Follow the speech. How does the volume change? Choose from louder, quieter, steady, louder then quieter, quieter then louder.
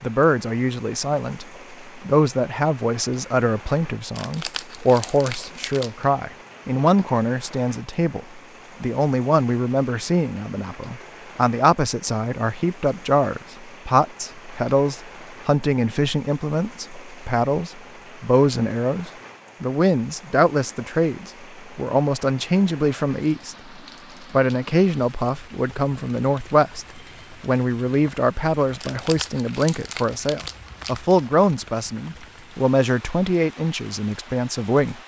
steady.